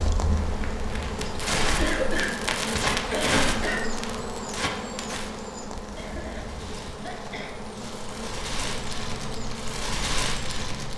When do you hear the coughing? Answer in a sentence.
The coughing can be heard from 1.8 to 3.8 s and from 6.0 to 7.5 s.